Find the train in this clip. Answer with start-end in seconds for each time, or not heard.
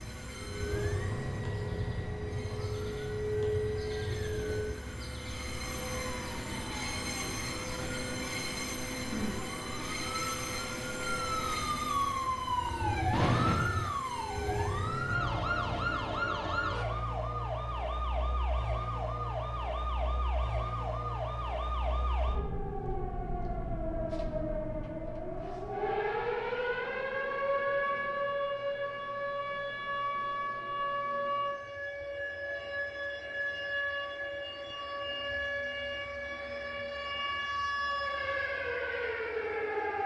0.0-15.2.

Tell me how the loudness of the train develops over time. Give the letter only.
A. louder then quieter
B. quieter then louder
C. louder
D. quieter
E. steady
E.